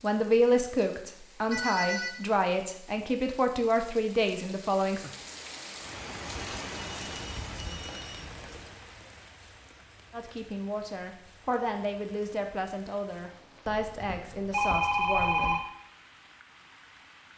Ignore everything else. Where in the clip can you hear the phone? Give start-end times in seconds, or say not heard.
1.5-2.2, 6.5-8.8, 13.7-15.6.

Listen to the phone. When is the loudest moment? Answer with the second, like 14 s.
15 s.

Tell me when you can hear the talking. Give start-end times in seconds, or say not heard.
0.0-5.0, 10.1-15.6.